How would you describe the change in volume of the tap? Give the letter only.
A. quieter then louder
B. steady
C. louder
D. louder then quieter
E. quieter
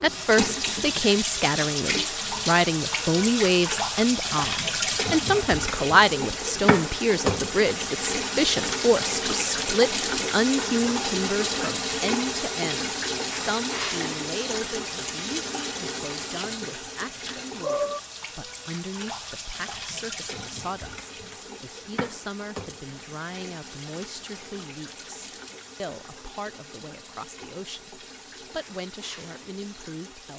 E.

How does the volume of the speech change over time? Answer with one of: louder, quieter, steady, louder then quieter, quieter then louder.
quieter.